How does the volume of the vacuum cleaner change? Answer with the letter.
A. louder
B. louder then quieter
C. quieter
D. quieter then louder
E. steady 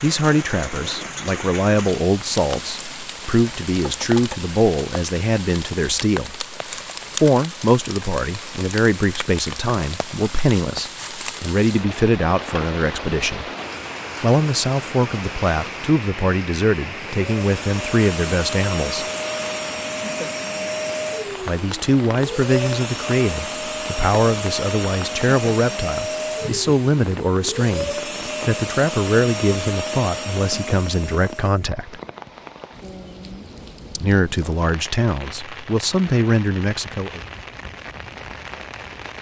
E.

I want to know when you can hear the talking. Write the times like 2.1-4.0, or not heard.
0.0-6.5, 7.2-13.4, 14.2-19.1, 21.4-32.0, 34.0-37.2.